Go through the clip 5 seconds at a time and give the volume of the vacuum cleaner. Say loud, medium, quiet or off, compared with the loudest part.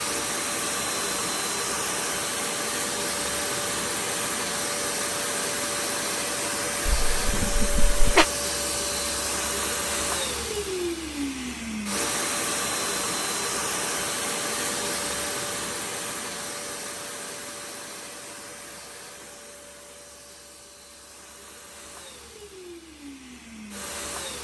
loud, loud, loud, medium, quiet.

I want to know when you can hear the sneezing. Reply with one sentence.
You can hear the sneezing from 6.8 to 8.2 s.